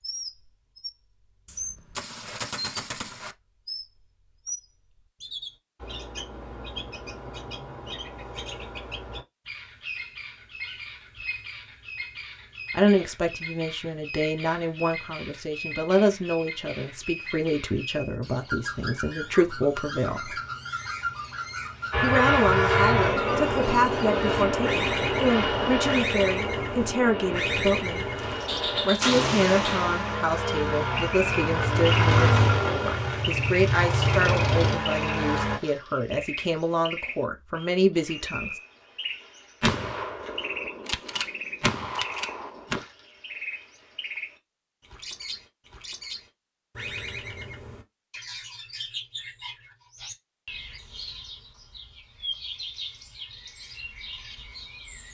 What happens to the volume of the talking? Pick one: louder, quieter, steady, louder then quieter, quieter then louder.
steady.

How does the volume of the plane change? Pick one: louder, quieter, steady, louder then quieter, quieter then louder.
quieter then louder.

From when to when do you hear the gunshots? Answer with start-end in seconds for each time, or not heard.
1.4-3.4, 28.1-30.1, 39.6-42.8.